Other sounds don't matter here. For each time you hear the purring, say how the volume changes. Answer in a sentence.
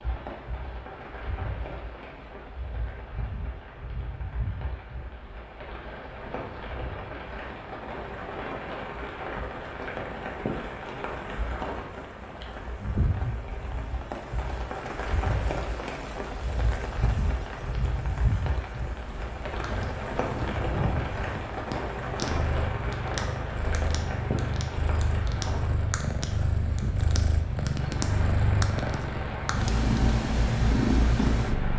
The purring can be heard from 19.0 to 31.7 s, getting louder.